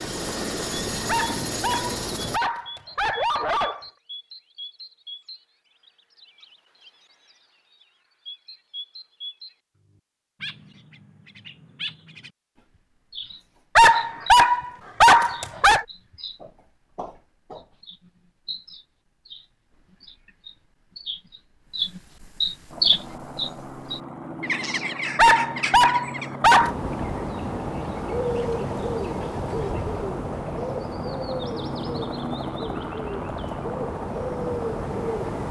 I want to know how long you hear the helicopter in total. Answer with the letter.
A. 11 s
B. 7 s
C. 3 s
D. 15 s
D.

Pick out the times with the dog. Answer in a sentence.
You can hear the dog from 1.1 to 3.9 s, from 13.8 to 15.8 s and from 25.1 to 26.7 s.